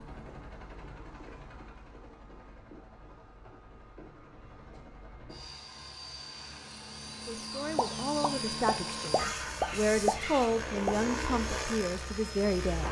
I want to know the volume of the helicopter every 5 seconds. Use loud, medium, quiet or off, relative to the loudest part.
quiet, loud, loud.